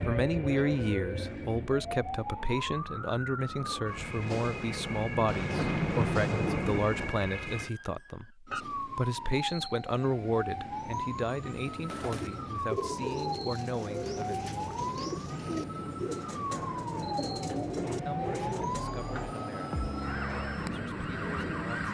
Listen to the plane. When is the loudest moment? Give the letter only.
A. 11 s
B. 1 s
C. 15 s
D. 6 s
D.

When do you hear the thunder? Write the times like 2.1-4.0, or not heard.
5.2-7.2.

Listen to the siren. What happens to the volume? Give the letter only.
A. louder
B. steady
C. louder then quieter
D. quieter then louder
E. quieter
B.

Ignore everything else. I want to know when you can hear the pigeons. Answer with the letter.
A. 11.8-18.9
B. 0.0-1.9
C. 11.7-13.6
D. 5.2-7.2
A.